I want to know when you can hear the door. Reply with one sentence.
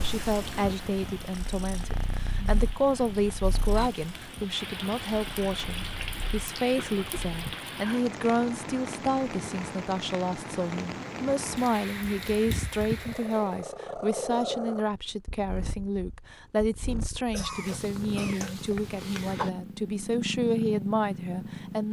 You can't hear the door here.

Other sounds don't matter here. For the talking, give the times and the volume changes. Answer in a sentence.
You can hear the talking from 0.0 to 21.8 s, at a steady volume.